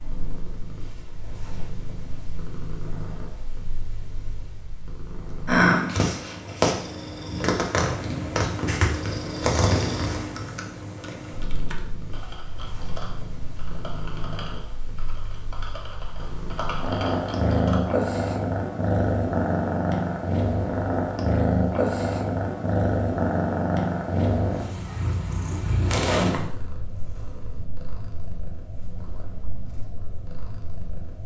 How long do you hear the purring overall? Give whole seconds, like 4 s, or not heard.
31 s.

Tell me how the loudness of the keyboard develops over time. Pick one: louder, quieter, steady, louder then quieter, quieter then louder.
louder.